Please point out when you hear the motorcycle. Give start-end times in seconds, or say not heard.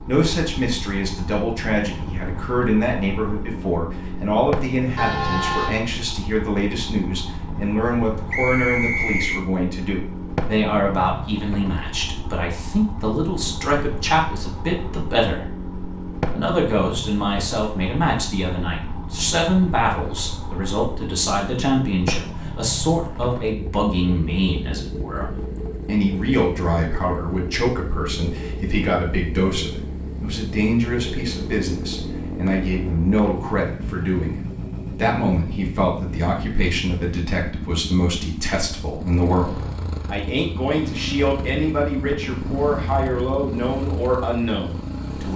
0.0-45.3.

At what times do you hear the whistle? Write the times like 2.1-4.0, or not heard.
8.3-9.4, 32.5-33.4.